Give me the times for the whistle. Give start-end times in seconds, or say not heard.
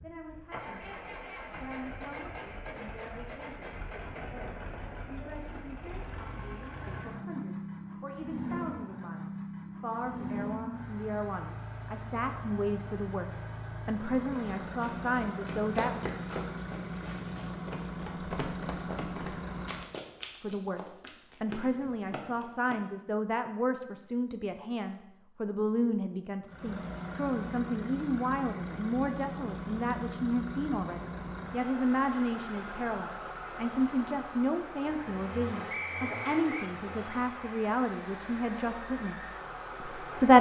35.7-36.7.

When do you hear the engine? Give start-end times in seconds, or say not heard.
0.0-19.9, 26.4-40.3.